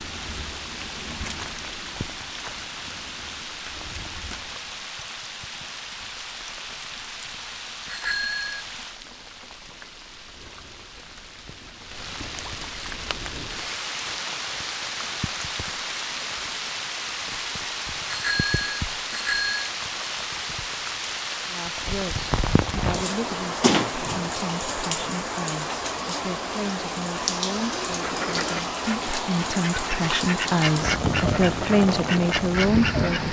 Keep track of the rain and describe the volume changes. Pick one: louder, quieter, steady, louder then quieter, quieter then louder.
louder.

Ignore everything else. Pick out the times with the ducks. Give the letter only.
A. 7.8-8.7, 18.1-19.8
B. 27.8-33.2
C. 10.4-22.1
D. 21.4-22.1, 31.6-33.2
B.